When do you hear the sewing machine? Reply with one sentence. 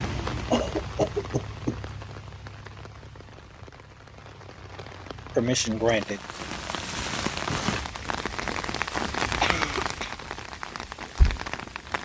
The sewing machine can't be heard in this clip.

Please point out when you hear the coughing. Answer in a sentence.
The coughing can be heard from 0.5 to 1.8 s, from 5.3 to 6.2 s and from 9.4 to 10.2 s.